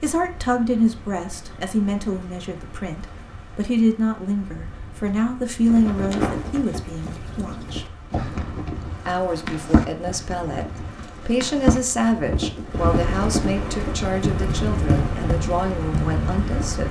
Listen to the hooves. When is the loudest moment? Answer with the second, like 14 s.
12 s.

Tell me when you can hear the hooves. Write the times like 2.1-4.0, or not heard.
5.6-16.6.